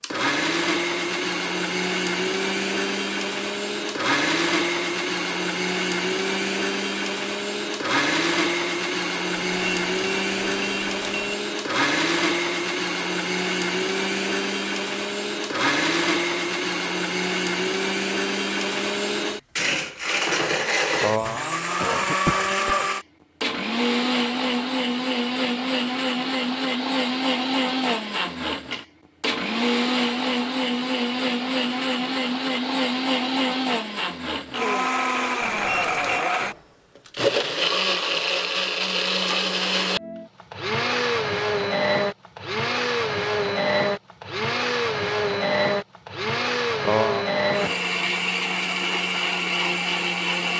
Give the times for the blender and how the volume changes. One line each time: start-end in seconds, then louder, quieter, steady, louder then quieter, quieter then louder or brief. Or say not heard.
0.0-50.5 steady.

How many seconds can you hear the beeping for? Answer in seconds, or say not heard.
3 s.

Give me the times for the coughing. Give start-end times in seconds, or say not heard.
21.0-22.9, 46.8-47.8.